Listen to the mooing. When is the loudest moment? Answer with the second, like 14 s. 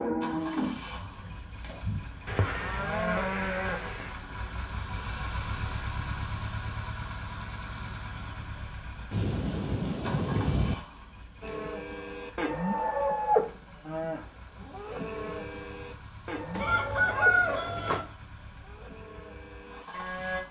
13 s.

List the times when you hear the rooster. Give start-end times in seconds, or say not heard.
16.6-18.1.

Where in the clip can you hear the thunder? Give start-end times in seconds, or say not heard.
9.1-10.8.